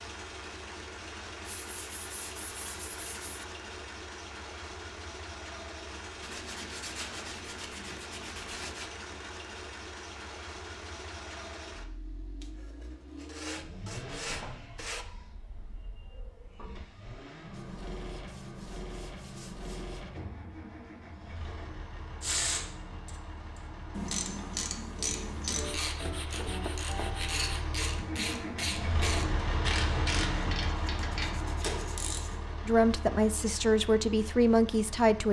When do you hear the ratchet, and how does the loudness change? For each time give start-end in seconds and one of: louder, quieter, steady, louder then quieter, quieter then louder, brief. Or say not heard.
22.2-32.5 steady.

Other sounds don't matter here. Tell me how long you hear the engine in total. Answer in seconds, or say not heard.
35 s.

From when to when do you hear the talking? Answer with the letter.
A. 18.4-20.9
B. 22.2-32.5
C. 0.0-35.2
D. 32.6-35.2
D.